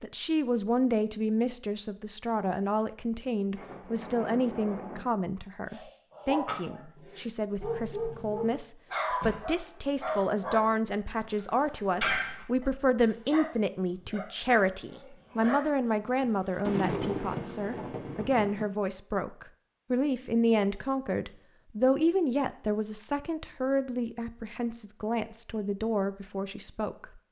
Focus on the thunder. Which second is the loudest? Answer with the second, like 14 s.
17 s.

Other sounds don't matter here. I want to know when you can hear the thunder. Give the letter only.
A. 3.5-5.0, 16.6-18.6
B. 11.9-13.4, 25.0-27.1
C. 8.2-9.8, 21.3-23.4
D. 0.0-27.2
A.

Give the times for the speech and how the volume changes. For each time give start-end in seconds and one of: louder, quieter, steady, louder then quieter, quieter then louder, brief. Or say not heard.
0.0-27.2 steady.